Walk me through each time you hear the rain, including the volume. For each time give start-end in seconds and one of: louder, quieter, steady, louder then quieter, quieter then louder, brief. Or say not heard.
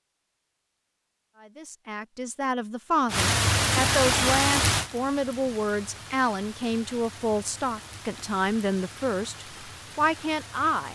3.0-10.9 quieter.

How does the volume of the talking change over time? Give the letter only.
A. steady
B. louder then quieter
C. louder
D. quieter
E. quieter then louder
A.